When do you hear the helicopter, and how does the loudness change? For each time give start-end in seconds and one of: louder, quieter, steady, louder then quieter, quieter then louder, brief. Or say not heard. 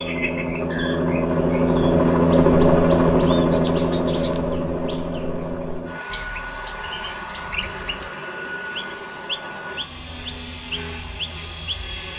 0.0-12.1 quieter.